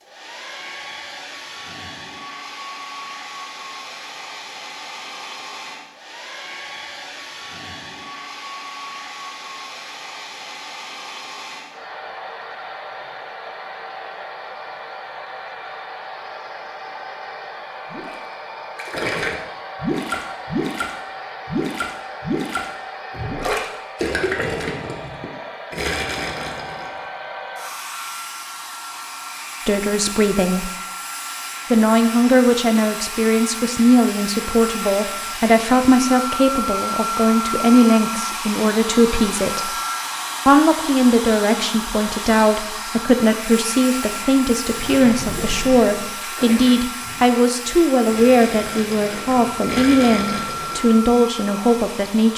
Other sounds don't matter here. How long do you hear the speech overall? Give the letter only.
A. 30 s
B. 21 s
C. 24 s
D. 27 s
B.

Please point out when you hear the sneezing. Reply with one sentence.
You can't hear the sneezing here.